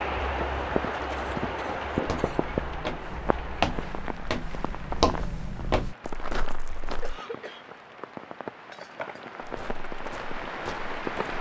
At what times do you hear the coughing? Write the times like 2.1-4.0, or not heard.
1.1-2.4, 7.0-7.7.